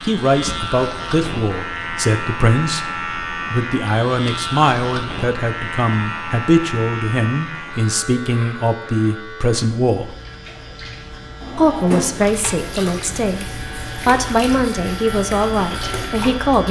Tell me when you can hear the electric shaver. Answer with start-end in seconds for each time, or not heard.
0.0-16.6.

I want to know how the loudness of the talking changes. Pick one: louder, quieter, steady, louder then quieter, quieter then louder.
steady.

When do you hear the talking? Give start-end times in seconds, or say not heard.
0.0-10.2, 11.6-16.6.